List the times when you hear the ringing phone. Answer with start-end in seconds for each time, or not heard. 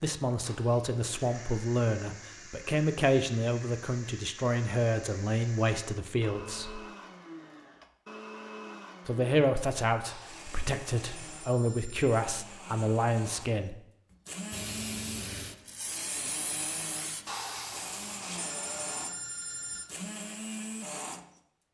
0.4-1.1, 10.0-12.2, 17.2-19.9.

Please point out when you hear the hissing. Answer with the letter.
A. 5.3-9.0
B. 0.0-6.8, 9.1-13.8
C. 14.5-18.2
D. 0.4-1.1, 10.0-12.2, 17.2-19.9
C.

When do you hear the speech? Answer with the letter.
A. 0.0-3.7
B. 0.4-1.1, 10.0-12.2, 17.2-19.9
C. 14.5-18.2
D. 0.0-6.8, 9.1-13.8
D.